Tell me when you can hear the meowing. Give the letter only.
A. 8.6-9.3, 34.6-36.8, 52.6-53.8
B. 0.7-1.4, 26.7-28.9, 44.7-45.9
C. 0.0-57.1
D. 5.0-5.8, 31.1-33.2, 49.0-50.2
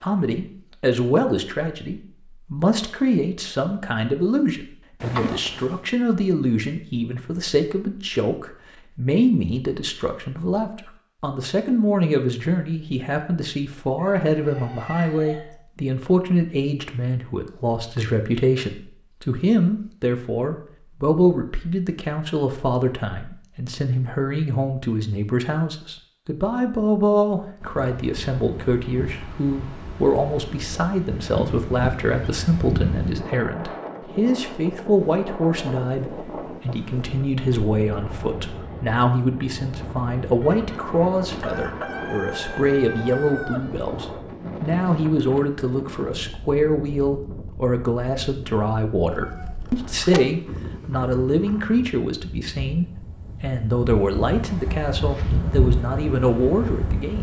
D.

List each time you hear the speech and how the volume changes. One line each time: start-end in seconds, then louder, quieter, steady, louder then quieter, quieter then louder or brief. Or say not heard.
0.0-57.1 steady.